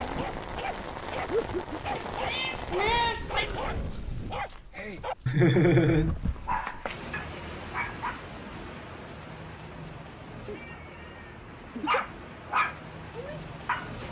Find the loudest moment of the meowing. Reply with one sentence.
The loudest moment of the meowing is at 3 seconds.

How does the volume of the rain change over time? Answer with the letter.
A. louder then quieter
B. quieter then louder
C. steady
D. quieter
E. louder
D.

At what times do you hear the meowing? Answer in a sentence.
The meowing can be heard from 1.9 to 3.5 s and from 10.4 to 11.9 s.